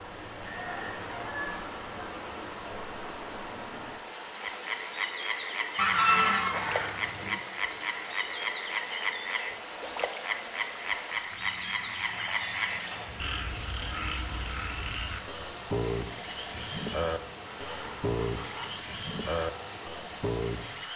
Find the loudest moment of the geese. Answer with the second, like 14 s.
6 s.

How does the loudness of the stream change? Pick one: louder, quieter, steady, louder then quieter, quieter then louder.
steady.